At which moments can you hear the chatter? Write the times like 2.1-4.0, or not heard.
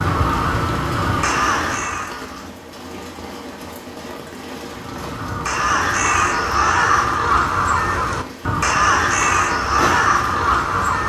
not heard.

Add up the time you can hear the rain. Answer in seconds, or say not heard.
11 s.